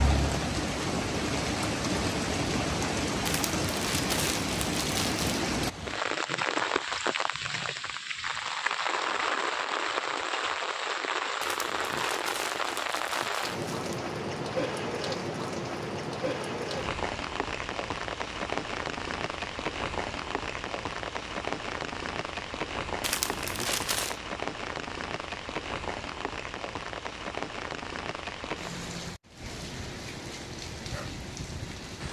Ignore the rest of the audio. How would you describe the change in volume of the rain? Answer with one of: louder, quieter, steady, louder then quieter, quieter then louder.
quieter.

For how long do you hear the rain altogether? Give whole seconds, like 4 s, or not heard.
32 s.